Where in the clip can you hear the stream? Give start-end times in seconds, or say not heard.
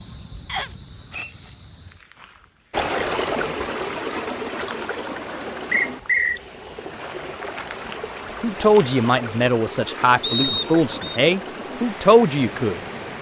2.7-13.1.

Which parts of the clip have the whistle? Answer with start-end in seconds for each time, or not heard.
0.5-1.3, 5.7-6.4, 10.2-11.2.